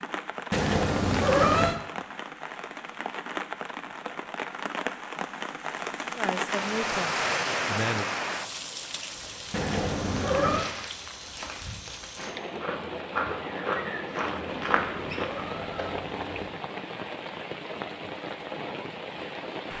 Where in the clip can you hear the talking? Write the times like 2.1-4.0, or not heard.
6.2-8.1.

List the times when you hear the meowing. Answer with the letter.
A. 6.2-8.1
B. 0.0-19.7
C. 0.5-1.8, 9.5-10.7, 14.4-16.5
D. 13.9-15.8
C.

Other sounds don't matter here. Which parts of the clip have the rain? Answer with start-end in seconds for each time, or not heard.
0.0-19.7.